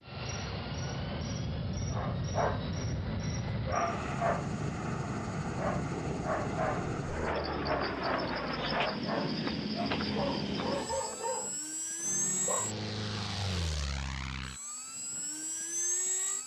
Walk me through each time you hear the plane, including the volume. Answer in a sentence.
You can hear the plane from 0.0 to 16.4 s, at a steady volume.